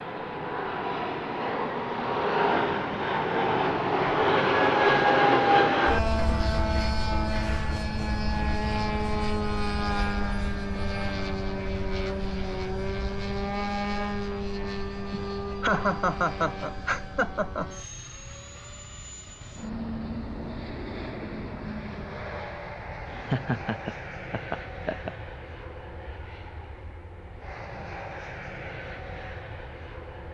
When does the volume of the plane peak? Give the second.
5 s.